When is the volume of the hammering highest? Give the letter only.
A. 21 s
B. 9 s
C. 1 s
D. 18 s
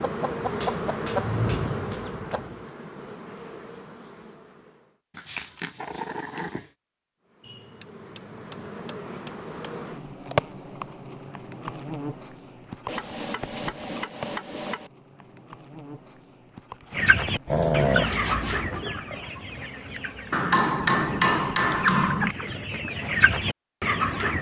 A.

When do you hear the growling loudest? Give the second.
18 s.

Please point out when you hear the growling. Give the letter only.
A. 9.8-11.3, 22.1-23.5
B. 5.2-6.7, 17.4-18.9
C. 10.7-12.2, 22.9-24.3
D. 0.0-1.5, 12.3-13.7
B.